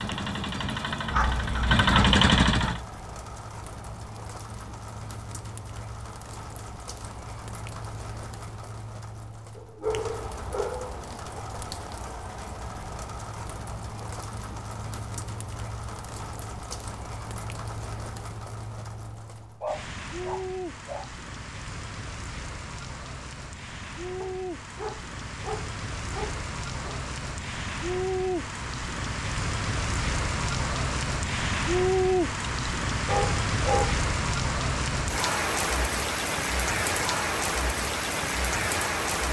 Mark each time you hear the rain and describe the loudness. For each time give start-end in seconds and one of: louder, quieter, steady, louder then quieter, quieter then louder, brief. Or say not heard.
0.0-39.2 louder.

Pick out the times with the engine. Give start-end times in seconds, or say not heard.
0.0-2.8.